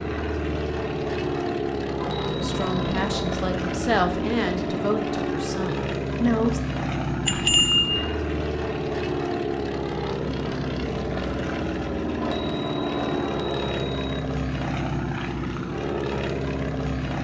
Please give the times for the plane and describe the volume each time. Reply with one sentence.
You can hear the plane from 0.0 to 17.2 s, at a steady volume.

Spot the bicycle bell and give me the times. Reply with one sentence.
You can hear the bicycle bell from 2.0 to 3.4 s, from 7.2 to 8.1 s and from 12.2 to 14.2 s.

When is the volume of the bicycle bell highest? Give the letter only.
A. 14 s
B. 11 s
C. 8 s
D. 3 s
C.